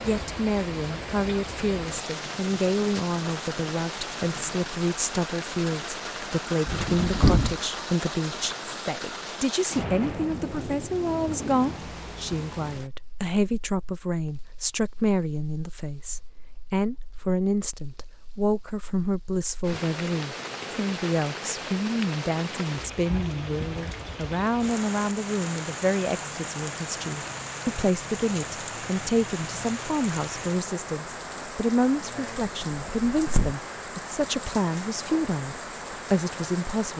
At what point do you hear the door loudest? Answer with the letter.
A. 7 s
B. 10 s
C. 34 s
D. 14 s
A.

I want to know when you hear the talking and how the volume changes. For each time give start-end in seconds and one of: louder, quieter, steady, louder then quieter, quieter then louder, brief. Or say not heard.
0.0-36.9 steady.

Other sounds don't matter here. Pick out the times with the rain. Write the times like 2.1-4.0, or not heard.
0.0-36.9.